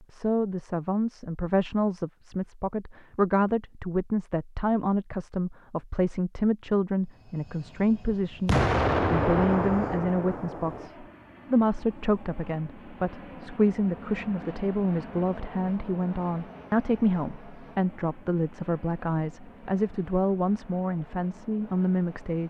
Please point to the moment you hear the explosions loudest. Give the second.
9 s.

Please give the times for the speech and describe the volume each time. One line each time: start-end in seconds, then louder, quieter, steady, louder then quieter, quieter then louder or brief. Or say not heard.
0.1-22.4 steady.